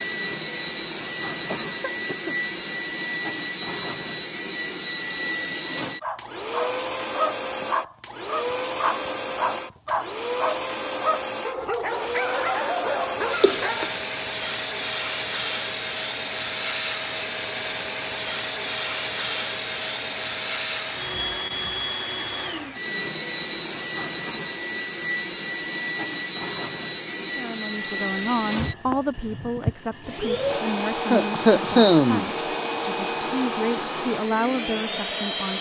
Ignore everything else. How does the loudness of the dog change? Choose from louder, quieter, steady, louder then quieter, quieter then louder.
steady.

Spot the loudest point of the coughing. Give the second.
32 s.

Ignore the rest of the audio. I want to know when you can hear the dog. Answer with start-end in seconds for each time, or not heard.
5.8-14.0.